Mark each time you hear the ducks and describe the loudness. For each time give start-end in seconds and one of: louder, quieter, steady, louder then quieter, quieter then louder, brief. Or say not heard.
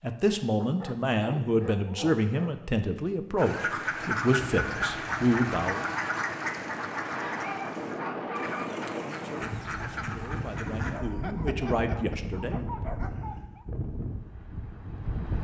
3.4-11.0 quieter.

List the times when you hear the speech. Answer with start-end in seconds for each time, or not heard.
0.0-5.8, 9.1-12.7.